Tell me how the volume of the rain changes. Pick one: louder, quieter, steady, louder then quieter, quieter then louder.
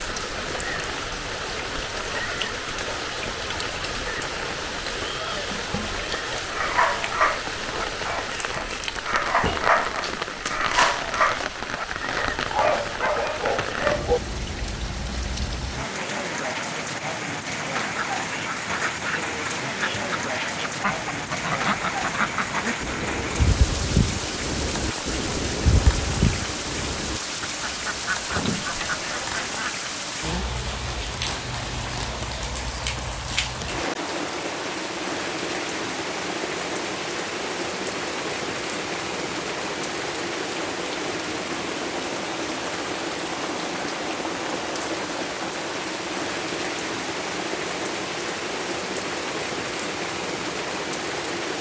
steady.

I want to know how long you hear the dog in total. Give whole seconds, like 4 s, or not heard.
8 s.